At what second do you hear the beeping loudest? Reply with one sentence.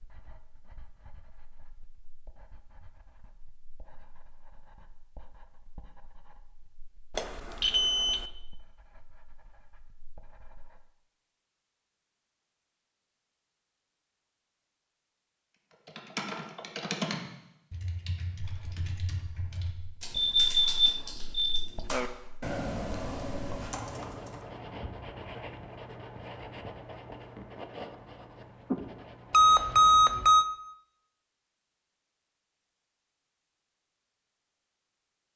The volume of the beeping peaks at 30 seconds.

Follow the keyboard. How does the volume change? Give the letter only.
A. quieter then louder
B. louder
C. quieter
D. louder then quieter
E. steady
A.